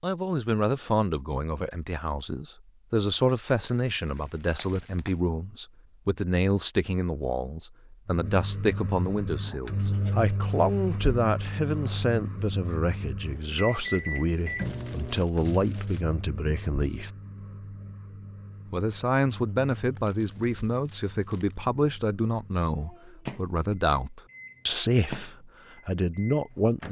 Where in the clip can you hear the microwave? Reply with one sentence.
You can hear the microwave from 8.1 to 26.8 s.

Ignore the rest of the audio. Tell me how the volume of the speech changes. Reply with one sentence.
The volume of the speech stays about the same.